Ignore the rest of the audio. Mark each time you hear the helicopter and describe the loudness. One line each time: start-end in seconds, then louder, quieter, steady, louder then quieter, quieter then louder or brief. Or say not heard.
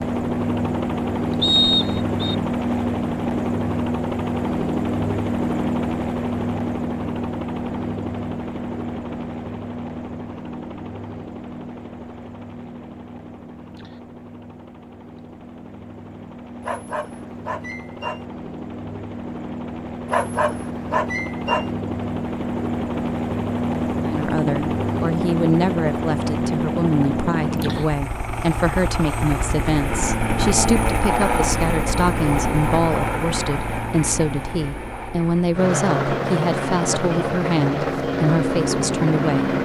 0.0-39.6 quieter then louder.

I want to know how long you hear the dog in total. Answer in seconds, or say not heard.
3 s.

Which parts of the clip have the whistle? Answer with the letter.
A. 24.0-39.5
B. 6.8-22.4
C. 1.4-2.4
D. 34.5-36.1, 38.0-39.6
C.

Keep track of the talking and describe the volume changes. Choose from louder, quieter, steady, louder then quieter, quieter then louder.
steady.